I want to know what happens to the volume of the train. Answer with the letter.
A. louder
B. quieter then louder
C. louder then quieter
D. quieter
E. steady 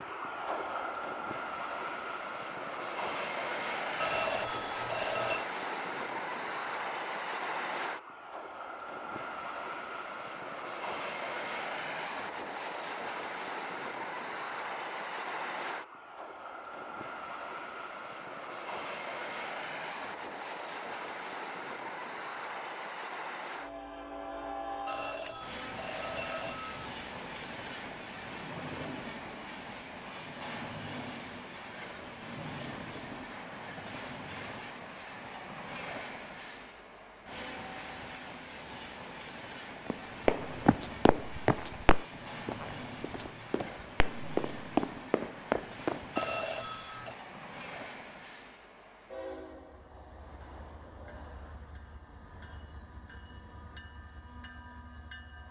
D.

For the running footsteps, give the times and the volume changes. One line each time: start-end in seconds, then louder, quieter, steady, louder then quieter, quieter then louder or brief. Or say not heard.
39.9-46.3 quieter then louder.